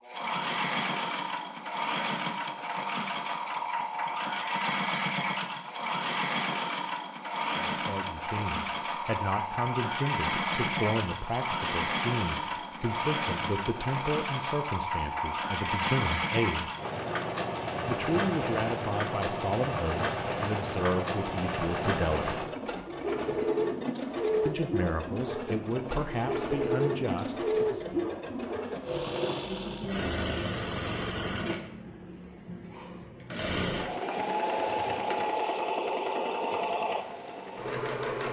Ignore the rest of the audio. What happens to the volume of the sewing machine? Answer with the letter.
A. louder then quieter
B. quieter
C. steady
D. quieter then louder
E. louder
C.